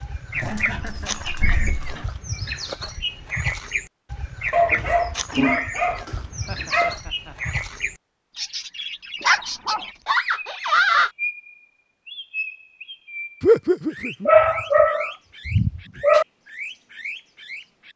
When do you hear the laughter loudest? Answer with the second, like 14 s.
14 s.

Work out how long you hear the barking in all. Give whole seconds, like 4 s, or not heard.
8 s.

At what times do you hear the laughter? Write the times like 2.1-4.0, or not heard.
0.3-1.8, 6.3-7.5, 13.4-14.3.